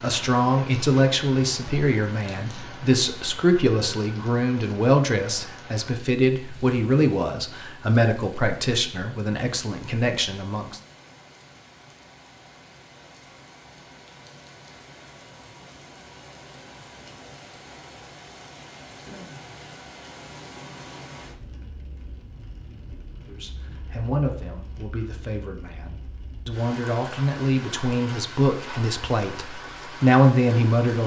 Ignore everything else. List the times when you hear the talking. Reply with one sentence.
You can hear the talking from 0.0 to 10.8 s and from 23.2 to 31.0 s.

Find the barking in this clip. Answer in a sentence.
The barking can't be heard in this clip.